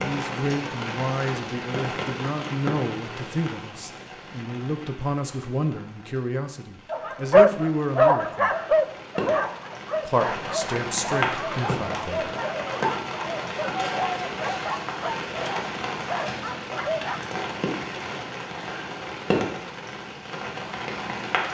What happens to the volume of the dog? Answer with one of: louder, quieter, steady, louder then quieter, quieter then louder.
quieter.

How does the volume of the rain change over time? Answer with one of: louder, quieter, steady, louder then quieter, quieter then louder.
quieter then louder.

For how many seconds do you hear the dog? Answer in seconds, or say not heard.
10 s.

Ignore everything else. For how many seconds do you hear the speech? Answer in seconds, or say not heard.
11 s.